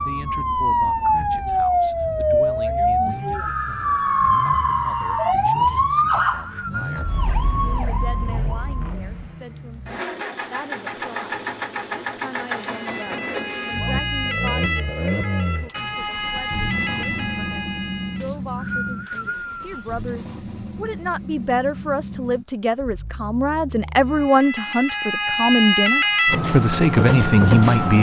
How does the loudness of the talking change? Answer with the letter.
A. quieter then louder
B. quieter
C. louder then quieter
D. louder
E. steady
D.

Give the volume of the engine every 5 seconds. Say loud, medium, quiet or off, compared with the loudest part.
medium, medium, loud, loud, medium, off.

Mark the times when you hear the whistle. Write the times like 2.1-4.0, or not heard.
5.7-7.0, 18.2-19.9.